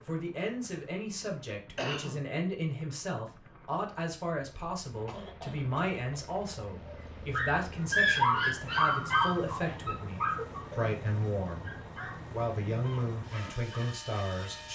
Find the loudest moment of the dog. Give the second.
8 s.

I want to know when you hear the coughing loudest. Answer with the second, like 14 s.
2 s.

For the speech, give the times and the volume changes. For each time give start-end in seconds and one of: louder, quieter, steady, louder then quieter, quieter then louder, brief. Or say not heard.
0.1-11.7 steady
12.3-14.7 brief.